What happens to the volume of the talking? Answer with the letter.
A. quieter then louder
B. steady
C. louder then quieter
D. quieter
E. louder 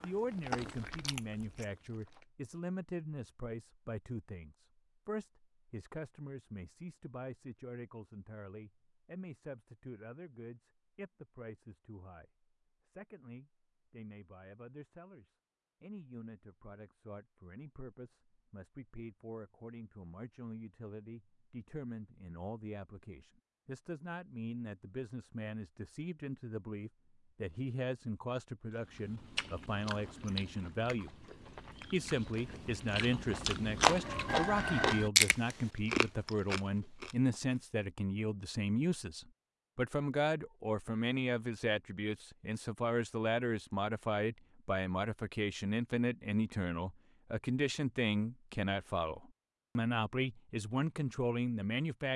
A.